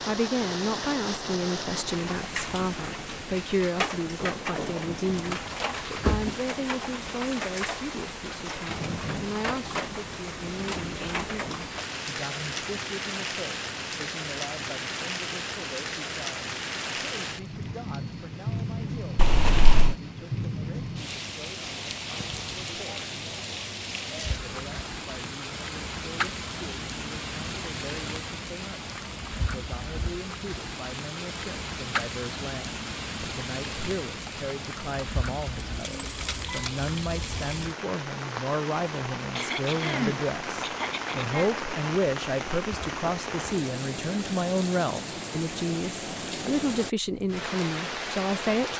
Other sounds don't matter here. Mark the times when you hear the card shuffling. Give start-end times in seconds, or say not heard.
not heard.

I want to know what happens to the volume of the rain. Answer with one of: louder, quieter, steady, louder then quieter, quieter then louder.
steady.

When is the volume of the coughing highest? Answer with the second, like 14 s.
40 s.